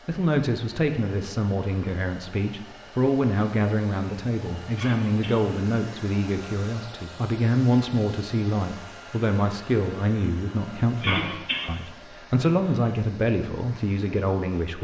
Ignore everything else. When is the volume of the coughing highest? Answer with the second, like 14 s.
11 s.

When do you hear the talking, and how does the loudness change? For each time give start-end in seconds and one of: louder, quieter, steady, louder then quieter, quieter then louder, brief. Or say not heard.
0.1-14.8 steady.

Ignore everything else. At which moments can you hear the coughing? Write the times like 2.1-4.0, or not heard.
4.8-5.5, 11.0-11.7.